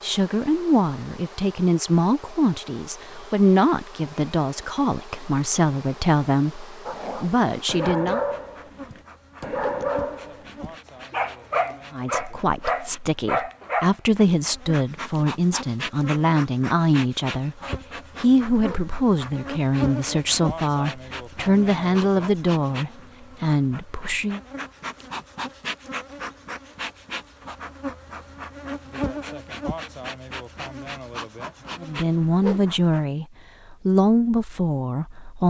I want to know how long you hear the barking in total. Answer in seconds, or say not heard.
7 s.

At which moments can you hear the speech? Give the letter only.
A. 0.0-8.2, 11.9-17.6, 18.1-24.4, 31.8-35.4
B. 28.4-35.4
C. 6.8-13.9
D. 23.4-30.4
A.